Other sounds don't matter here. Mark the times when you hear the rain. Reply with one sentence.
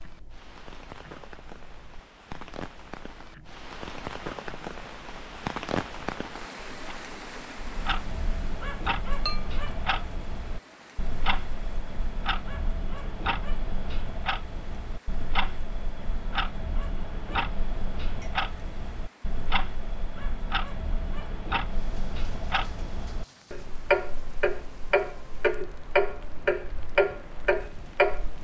The rain can be heard from 0.0 to 28.3 s.